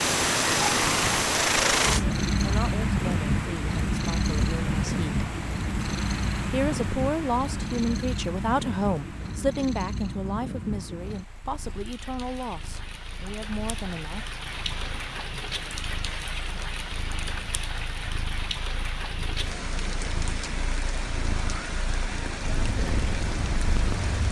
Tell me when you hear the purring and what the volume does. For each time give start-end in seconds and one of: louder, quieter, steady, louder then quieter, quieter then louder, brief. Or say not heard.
0.0-24.2 quieter then louder.